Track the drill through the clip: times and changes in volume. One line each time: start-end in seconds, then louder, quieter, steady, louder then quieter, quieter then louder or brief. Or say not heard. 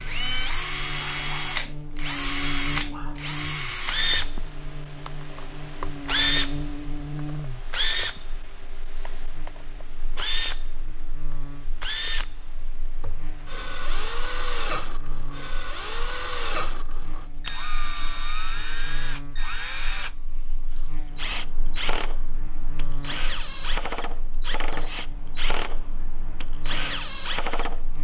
0.0-10.7 quieter
11.8-27.9 steady.